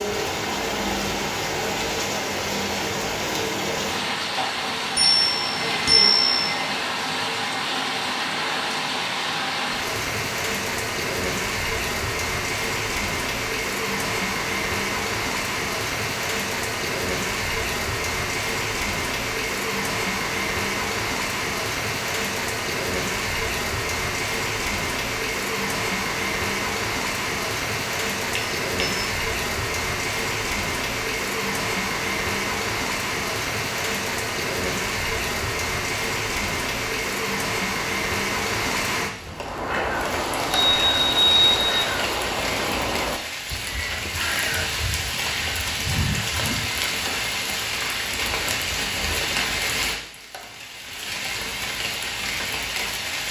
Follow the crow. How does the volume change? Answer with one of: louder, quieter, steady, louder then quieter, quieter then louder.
quieter.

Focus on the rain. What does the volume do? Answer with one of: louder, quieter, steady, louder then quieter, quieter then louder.
steady.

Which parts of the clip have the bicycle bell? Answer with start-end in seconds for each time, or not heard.
5.0-6.5, 28.4-29.1, 40.5-41.9.